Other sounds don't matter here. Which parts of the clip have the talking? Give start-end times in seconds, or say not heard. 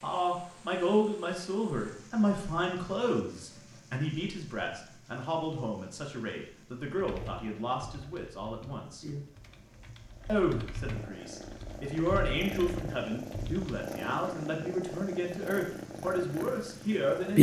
0.0-9.1, 10.2-17.3.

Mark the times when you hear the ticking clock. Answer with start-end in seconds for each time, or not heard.
not heard.